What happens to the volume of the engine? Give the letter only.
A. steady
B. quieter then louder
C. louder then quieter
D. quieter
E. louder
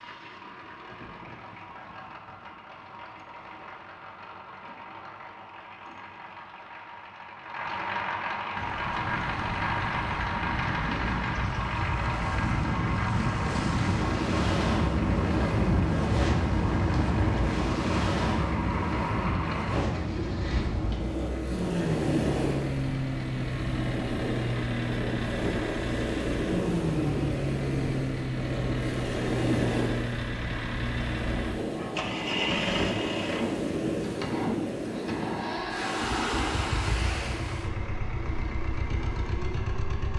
E.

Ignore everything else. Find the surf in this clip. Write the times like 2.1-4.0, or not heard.
8.6-39.9.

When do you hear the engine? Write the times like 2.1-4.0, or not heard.
0.0-40.1.